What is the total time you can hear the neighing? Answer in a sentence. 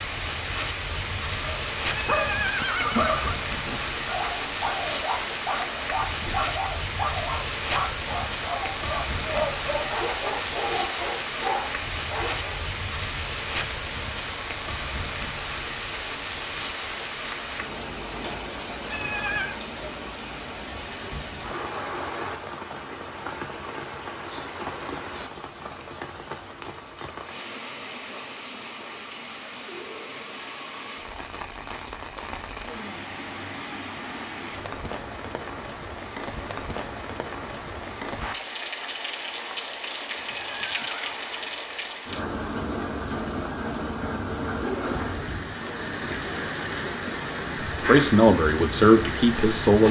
You can hear the neighing for 3 seconds altogether.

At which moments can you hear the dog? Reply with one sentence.
You can hear the dog from 1.4 to 12.6 s.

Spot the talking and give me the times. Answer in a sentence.
You can hear the talking from 47.7 to 49.8 s.